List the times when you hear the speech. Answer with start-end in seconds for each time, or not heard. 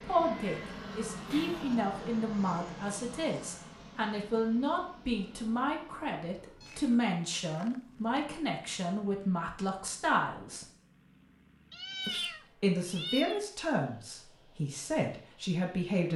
0.0-10.7, 12.1-16.1.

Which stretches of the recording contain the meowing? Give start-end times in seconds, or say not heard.
0.3-1.8, 6.6-8.2, 11.7-13.4.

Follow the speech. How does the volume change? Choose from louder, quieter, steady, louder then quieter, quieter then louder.
steady.